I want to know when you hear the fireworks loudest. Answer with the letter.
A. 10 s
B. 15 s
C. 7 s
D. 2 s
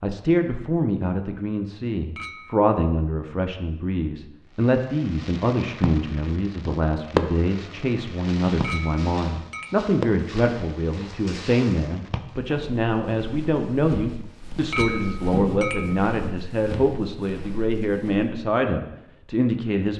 C.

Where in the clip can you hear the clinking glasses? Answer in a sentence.
The clinking glasses can be heard from 2.1 to 2.7 s, from 8.6 to 9.8 s and from 14.7 to 16.1 s.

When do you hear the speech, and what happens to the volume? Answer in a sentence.
You can hear the speech from 0.0 to 19.9 s, at a steady volume.